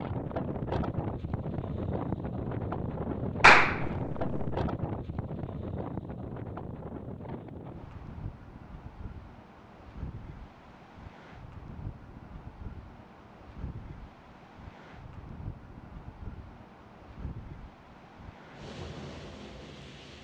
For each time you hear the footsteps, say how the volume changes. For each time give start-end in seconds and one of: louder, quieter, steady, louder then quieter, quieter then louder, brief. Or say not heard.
not heard.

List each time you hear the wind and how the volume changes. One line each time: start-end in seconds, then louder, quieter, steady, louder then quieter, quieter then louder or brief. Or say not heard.
0.0-20.2 quieter.